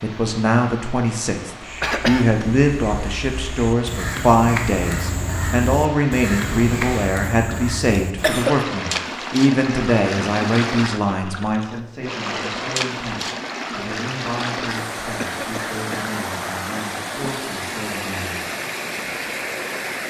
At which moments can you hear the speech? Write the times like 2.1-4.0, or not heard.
0.0-18.4.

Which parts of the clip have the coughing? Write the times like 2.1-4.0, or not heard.
1.8-2.2, 8.2-8.7, 15.2-16.1.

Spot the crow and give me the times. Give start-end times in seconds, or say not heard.
1.6-8.4.